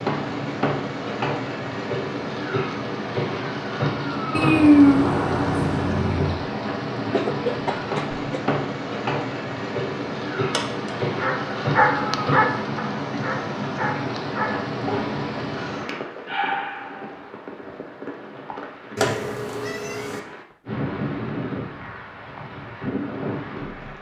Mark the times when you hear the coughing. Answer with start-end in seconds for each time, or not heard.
7.1-8.2.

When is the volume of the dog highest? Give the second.
12 s.